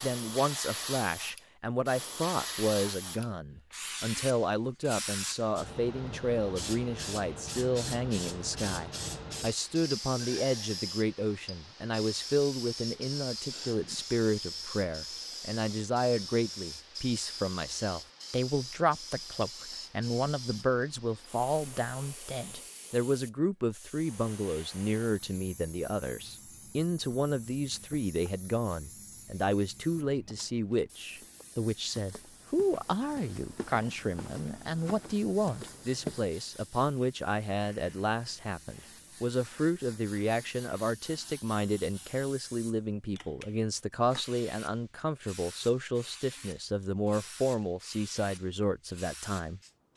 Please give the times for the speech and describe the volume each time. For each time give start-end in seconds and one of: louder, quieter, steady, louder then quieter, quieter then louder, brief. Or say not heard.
0.0-49.6 steady.